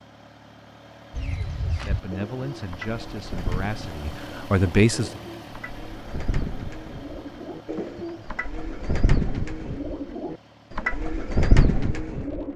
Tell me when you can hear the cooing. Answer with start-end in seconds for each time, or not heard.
1.1-12.5.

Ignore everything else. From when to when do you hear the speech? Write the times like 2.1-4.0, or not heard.
1.6-5.2.